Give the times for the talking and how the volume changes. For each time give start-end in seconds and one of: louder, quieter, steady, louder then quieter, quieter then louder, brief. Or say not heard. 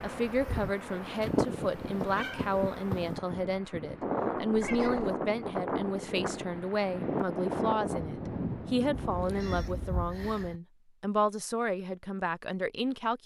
0.0-13.2 steady.